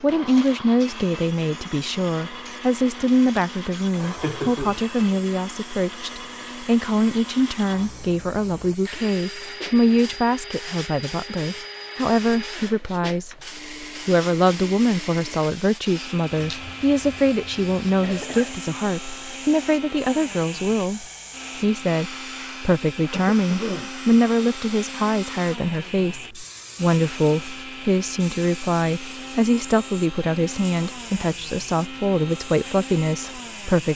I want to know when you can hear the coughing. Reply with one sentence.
You can hear the coughing from 4.0 to 4.8 s, from 18.0 to 18.6 s and from 23.1 to 23.9 s.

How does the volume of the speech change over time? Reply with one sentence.
The volume of the speech stays about the same.